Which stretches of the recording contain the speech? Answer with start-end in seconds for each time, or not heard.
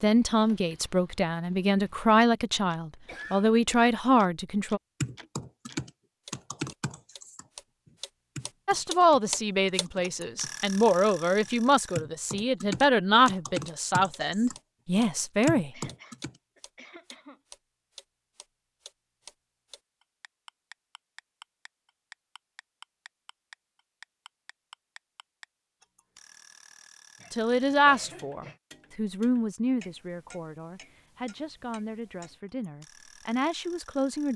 0.0-4.8, 8.7-15.7, 27.3-34.3.